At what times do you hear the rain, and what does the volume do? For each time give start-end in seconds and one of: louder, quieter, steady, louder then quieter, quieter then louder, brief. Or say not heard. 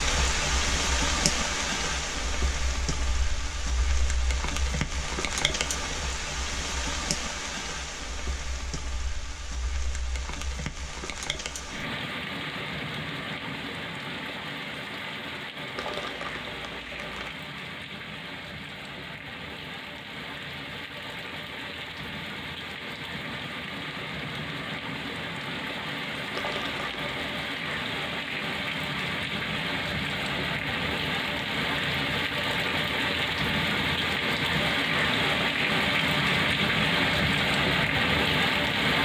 0.0-38.9 quieter then louder.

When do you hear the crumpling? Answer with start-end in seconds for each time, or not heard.
15.8-17.4, 26.4-27.1.